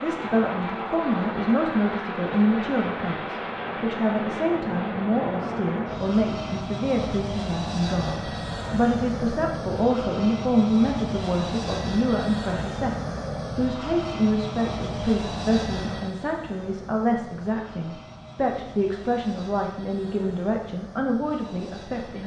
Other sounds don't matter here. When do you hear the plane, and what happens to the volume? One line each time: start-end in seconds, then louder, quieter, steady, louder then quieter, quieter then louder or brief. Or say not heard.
0.0-22.2 quieter.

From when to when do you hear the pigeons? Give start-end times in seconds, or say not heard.
not heard.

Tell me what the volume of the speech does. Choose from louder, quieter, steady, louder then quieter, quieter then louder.
steady.